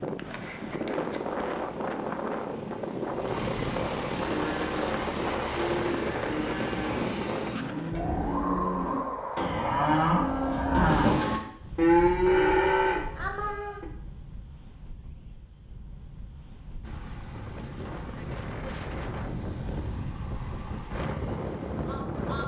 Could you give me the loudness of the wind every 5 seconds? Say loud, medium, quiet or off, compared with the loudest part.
loud, loud, medium, medium, loud.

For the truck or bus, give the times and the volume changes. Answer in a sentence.
You can hear the truck or bus from 0.0 to 7.6 s, getting louder; and from 16.8 to 22.4 s, at a steady volume.